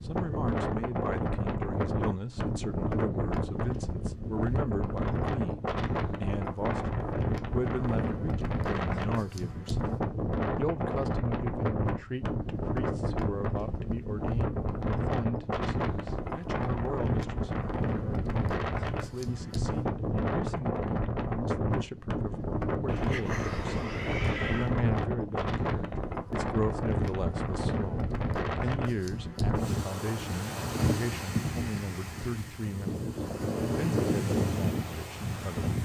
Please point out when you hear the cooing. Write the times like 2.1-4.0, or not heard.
not heard.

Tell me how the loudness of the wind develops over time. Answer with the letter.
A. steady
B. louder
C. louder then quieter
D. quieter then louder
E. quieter
A.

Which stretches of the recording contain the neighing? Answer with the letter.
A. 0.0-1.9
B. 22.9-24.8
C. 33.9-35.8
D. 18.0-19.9
B.